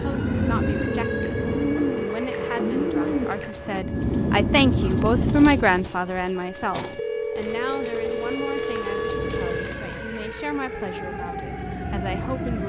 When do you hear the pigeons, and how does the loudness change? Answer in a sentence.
You can hear the pigeons from 0.5 to 10.0 s, getting quieter.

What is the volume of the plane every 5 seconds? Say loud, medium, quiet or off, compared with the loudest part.
loud, loud, medium.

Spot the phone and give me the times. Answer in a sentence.
The phone can be heard from 0.8 to 3.4 s and from 7.0 to 9.8 s.